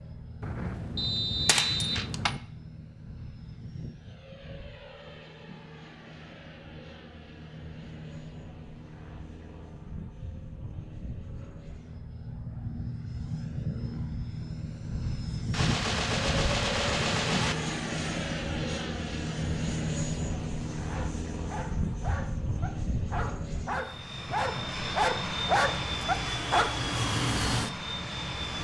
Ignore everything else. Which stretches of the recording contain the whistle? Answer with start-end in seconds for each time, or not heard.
0.9-2.0.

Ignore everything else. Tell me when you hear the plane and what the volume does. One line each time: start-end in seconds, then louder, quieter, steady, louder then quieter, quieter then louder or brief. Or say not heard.
0.0-28.5 louder.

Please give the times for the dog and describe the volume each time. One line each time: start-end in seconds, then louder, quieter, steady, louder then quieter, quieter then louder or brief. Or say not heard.
20.9-26.7 louder.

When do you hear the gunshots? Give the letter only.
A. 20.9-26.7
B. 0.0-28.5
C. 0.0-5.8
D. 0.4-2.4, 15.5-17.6
D.